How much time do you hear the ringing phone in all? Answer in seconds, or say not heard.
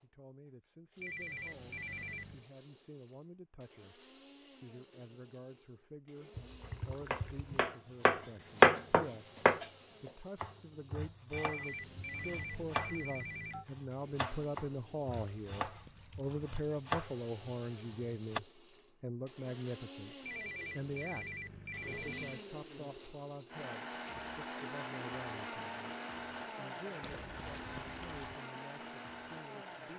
6 s.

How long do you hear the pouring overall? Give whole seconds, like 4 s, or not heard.
4 s.